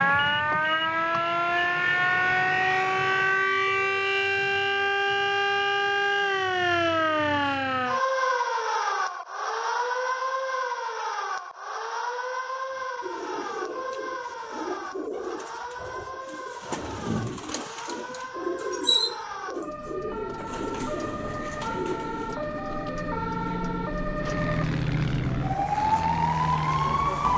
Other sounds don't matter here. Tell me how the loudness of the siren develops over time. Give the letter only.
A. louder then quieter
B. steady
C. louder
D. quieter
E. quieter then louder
E.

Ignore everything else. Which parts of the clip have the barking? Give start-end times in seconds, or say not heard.
not heard.